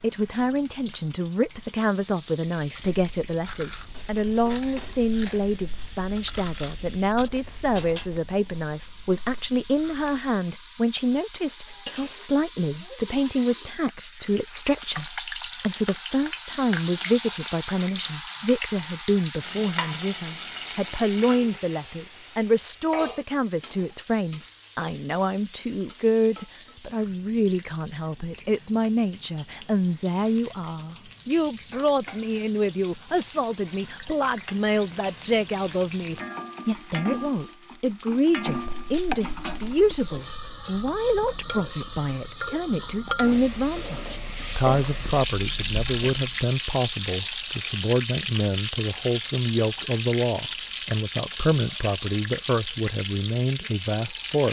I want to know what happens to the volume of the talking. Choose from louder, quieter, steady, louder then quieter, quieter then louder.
steady.